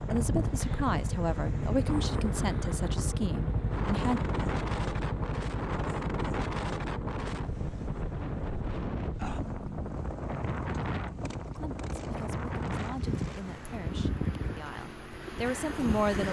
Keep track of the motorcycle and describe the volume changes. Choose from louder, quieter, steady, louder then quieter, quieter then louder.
quieter.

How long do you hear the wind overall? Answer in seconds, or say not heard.
16 s.